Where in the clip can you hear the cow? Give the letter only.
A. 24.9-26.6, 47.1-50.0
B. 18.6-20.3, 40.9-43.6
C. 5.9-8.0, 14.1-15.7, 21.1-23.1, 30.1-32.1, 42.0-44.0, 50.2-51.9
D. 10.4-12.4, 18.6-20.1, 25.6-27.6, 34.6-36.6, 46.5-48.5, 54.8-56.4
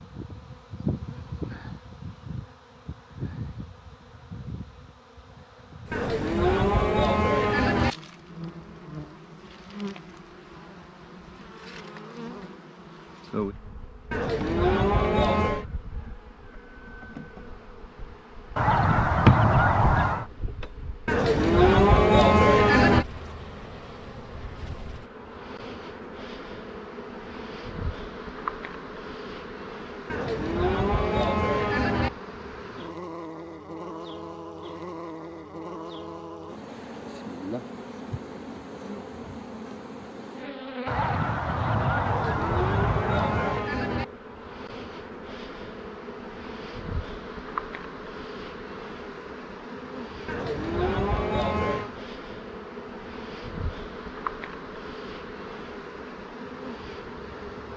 C.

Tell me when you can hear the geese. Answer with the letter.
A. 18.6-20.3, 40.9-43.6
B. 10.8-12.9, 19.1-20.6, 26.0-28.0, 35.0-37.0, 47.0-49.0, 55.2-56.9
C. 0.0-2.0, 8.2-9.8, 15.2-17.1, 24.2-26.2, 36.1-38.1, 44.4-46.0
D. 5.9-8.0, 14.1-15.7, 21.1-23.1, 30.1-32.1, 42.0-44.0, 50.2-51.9
A.